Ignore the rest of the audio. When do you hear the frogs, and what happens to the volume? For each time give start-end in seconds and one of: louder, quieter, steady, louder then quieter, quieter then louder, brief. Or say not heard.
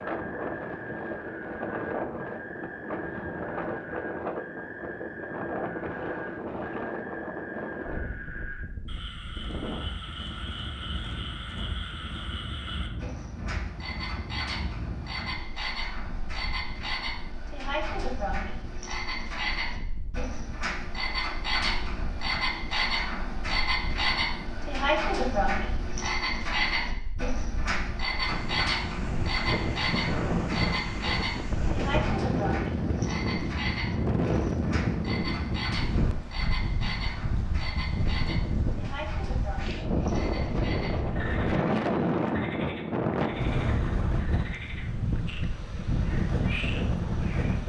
0.1-47.6 louder then quieter.